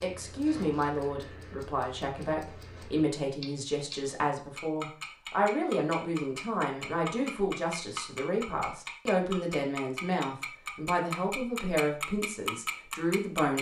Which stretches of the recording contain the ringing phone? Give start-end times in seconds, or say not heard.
not heard.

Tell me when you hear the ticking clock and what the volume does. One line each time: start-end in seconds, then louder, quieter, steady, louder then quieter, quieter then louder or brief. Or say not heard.
0.0-13.5 louder.